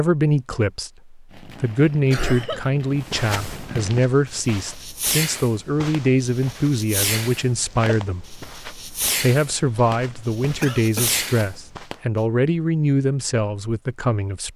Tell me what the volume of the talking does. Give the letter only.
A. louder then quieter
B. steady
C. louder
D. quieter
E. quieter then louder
B.